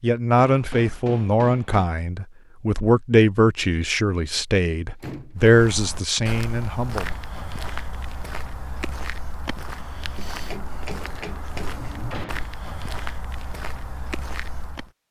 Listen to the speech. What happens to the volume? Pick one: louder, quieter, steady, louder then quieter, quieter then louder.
steady.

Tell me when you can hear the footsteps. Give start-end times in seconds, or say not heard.
5.3-14.9.